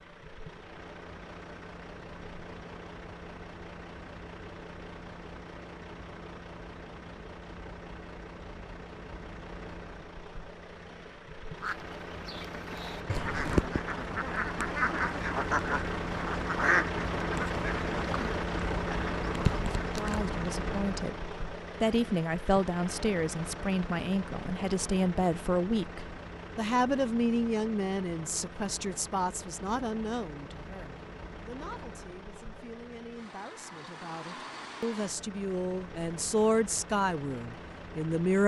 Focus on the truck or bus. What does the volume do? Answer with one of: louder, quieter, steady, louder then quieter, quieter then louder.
louder then quieter.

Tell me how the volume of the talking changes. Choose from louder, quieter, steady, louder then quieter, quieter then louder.
quieter then louder.